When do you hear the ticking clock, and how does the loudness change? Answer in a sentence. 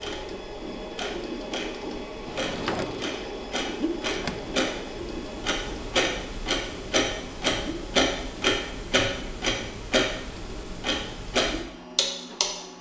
You can hear the ticking clock from 0.0 to 12.7 s, getting louder.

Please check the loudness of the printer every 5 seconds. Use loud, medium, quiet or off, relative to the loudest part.
loud, medium, medium.